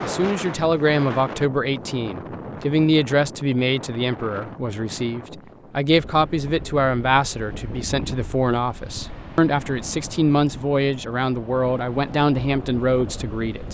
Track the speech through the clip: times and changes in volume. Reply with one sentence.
The speech can be heard from 0.0 to 13.6 s, at a steady volume.